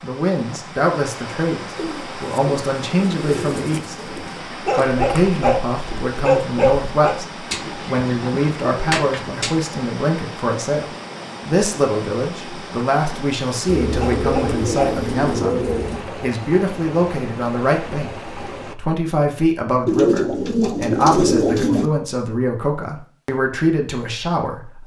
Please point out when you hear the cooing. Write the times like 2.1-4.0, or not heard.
1.8-4.5, 7.5-9.6, 13.7-16.1, 19.9-21.9.